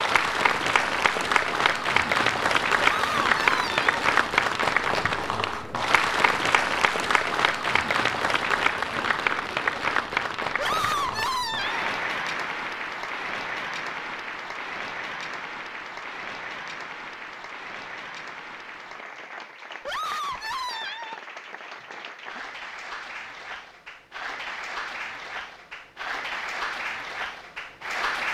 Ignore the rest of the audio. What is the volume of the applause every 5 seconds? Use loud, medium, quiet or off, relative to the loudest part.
loud, loud, medium, quiet, quiet, medium.